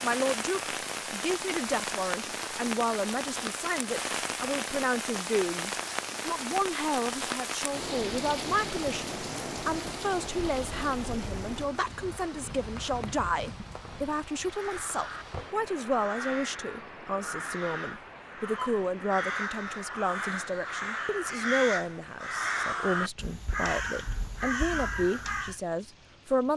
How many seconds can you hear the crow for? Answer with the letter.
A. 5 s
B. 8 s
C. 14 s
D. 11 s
D.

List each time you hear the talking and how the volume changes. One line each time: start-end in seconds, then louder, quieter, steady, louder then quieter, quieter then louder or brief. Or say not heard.
0.0-26.5 steady.